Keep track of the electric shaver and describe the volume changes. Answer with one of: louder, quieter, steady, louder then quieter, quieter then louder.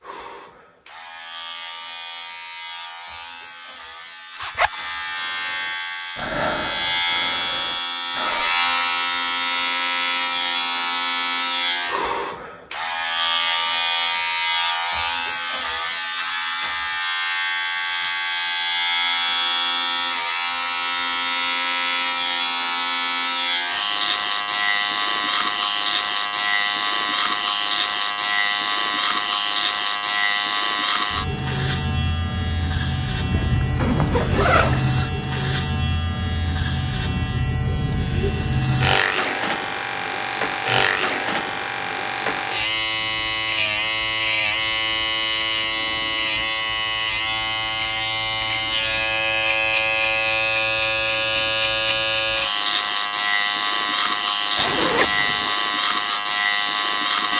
steady.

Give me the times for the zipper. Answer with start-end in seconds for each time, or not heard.
4.3-4.8, 33.3-34.9, 54.5-55.5.